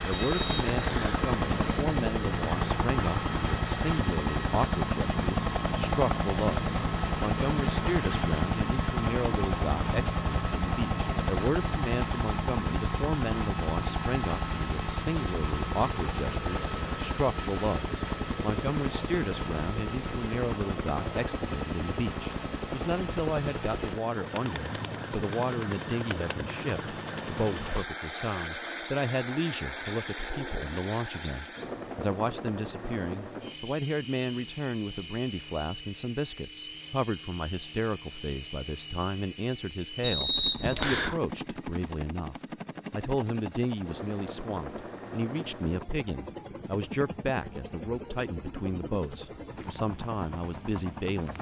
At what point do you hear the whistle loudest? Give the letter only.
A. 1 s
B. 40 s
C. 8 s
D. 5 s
B.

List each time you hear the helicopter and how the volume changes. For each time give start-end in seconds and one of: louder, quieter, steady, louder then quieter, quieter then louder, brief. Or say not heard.
0.0-51.3 quieter.